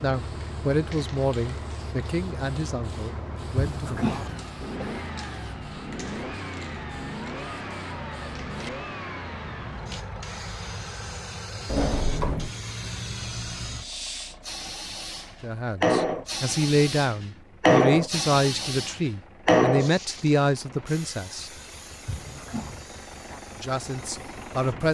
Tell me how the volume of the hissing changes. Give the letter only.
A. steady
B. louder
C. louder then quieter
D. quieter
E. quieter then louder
C.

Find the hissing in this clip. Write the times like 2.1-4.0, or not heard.
0.0-24.8.